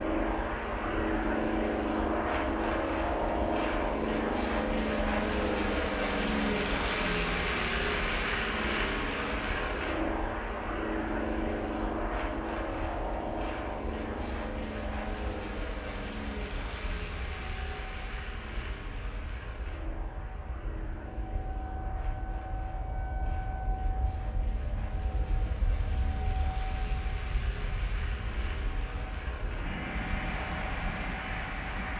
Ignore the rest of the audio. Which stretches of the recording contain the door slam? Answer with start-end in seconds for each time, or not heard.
not heard.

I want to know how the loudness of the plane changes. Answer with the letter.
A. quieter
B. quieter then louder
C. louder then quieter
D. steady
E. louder
B.